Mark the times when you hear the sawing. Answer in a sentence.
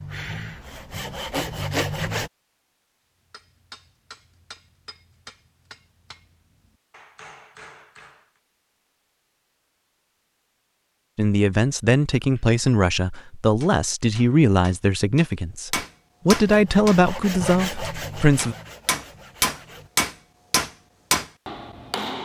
You can hear the sawing from 0.0 to 2.3 s and from 16.4 to 19.9 s.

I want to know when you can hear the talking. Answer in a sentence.
You can hear the talking from 11.2 to 18.6 s.